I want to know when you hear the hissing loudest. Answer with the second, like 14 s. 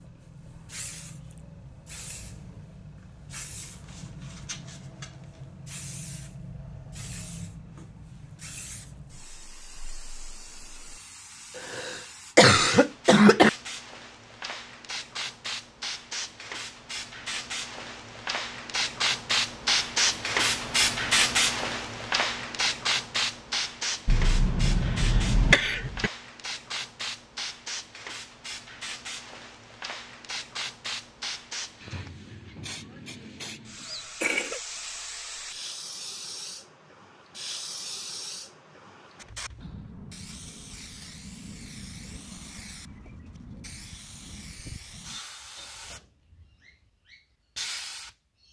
21 s.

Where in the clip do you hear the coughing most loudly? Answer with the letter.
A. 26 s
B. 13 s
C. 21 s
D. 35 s
B.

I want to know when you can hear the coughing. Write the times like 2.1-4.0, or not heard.
11.7-13.5, 24.1-26.1, 33.8-34.6.